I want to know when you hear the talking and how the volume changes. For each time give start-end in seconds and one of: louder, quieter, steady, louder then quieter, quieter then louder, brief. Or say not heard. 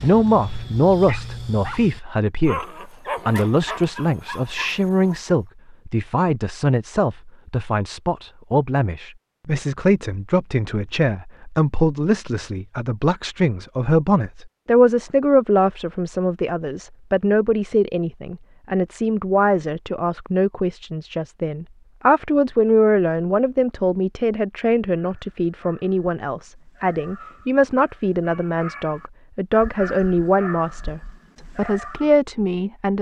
0.0-2.6 brief
3.2-32.9 steady.